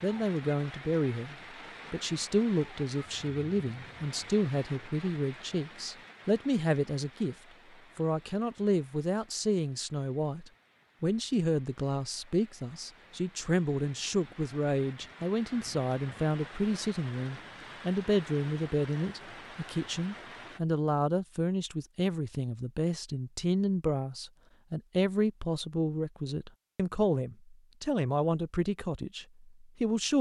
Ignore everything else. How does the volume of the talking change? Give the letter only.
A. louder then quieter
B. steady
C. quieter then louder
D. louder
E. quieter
B.